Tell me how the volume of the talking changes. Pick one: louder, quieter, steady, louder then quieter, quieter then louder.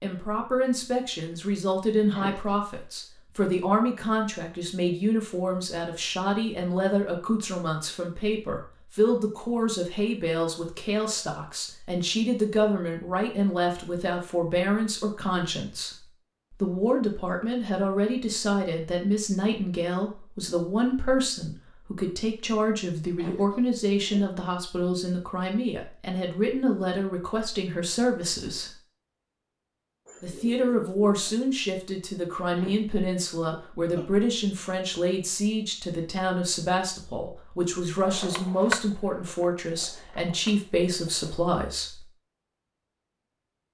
steady.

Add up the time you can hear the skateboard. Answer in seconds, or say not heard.
3 s.